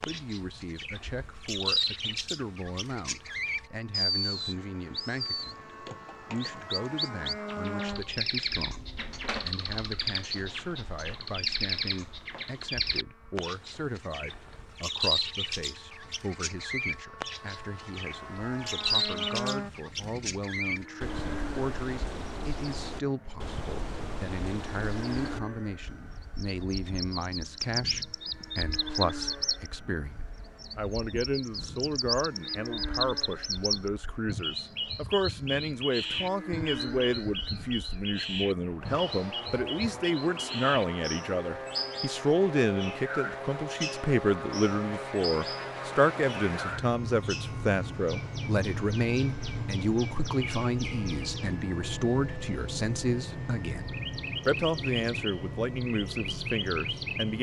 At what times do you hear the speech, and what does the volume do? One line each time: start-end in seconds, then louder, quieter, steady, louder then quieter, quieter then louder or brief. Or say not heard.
0.0-57.3 louder.